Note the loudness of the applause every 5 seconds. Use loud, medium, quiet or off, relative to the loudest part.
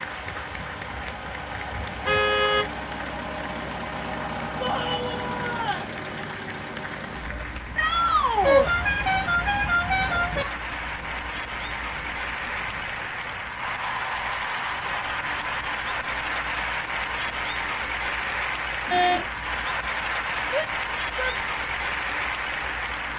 medium, medium, loud, loud, loud.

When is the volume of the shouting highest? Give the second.
8 s.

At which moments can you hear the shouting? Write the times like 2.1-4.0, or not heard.
4.6-5.9, 7.8-8.7, 20.5-21.3.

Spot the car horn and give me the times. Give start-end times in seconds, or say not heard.
2.0-2.6, 8.4-10.4, 18.9-19.3.